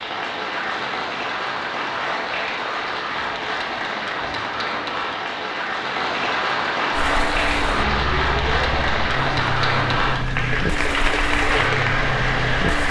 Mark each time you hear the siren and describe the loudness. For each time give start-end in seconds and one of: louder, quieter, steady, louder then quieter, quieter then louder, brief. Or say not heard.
6.9-12.8 steady.